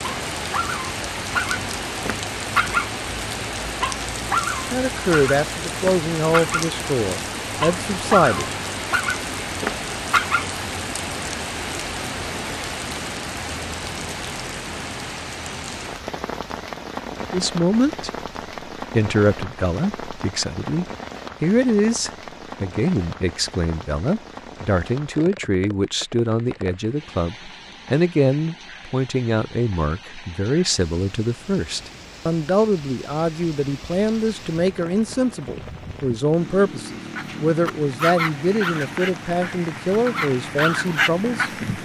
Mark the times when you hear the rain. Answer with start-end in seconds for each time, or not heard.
0.0-41.7.